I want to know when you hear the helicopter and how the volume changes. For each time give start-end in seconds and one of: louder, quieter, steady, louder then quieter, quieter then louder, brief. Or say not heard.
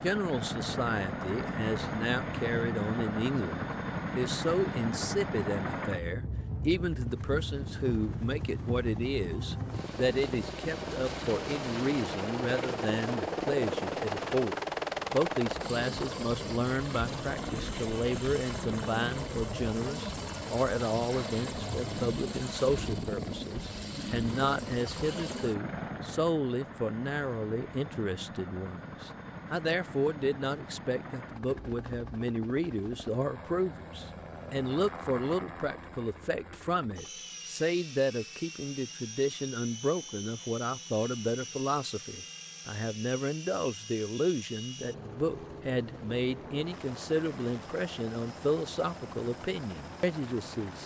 0.0-50.8 quieter.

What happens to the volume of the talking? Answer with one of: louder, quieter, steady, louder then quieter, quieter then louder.
steady.